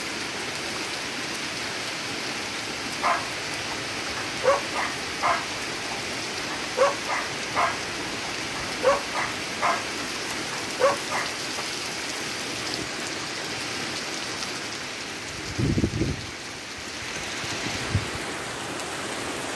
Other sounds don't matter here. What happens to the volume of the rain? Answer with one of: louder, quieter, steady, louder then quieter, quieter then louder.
steady.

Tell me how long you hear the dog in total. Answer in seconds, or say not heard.
9 s.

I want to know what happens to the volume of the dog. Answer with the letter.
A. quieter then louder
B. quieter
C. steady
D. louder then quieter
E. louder
C.